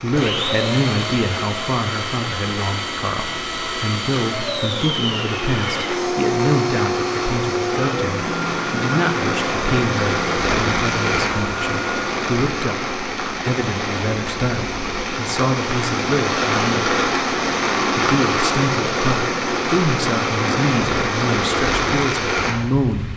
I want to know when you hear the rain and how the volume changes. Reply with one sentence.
The rain can be heard from 0.0 to 23.1 s, getting louder.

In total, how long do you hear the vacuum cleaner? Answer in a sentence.
You can hear the vacuum cleaner for 12 seconds altogether.